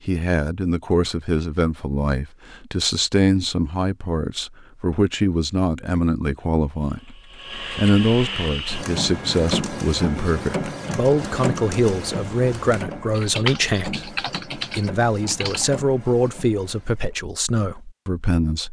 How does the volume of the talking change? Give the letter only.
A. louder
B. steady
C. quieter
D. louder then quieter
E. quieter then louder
B.